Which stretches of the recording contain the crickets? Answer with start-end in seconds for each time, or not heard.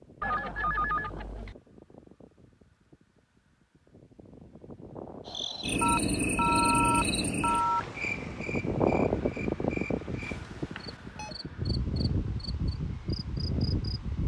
5.2-13.9.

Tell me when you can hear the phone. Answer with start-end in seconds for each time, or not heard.
0.2-1.6, 5.8-7.8, 10.2-11.3.